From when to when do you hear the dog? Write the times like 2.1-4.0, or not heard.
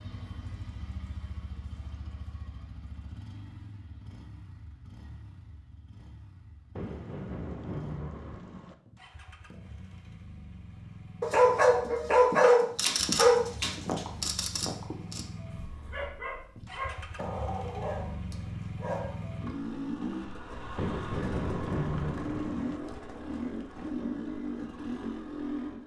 11.2-19.4.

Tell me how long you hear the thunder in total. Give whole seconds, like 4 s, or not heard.
4 s.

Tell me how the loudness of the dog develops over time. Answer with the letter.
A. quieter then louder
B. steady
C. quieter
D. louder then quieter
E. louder
C.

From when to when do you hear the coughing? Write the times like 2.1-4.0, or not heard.
not heard.